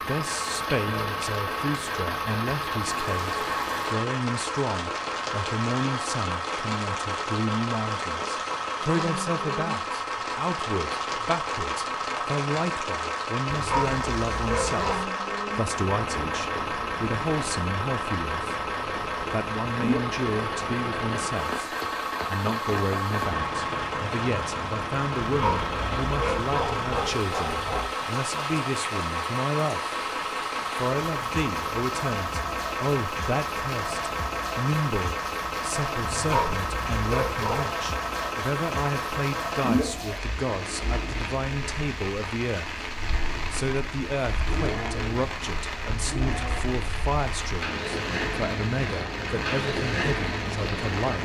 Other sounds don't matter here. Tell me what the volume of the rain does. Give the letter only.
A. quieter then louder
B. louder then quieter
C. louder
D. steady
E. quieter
D.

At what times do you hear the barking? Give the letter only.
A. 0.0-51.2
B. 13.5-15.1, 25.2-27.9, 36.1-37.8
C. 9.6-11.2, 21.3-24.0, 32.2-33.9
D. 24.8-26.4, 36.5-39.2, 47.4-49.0
B.